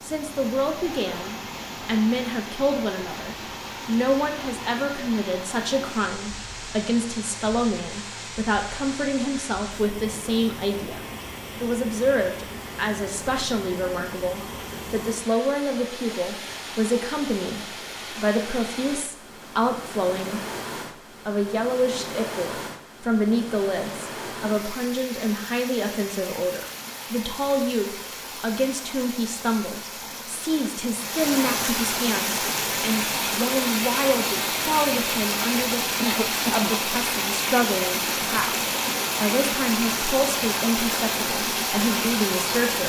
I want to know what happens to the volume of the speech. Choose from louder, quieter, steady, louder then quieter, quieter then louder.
steady.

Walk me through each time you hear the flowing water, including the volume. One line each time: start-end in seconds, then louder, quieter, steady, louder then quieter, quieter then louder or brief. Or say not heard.
0.0-42.8 louder.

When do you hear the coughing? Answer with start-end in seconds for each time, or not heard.
36.0-36.7.